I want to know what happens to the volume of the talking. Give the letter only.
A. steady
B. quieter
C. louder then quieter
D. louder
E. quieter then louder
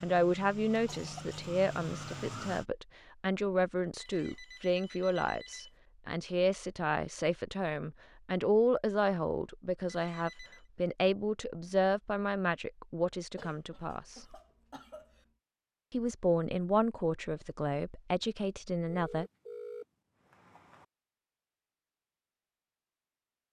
A.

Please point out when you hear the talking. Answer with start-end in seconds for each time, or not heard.
0.0-14.3, 15.9-19.2.